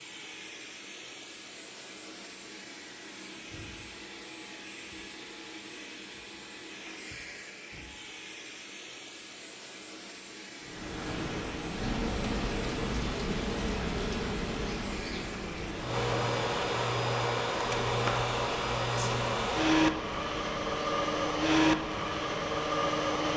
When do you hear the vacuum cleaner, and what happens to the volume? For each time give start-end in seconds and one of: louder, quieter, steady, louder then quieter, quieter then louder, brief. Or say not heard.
0.0-23.3 louder.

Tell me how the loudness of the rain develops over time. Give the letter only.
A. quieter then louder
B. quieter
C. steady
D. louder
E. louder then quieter
B.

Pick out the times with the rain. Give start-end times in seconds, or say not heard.
10.6-23.3.